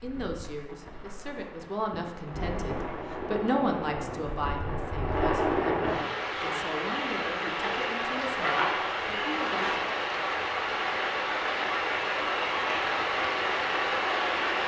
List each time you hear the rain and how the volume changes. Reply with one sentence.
The rain can be heard from 0.0 to 14.6 s, getting louder.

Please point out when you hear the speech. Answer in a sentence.
The speech can be heard from 0.0 to 9.8 s.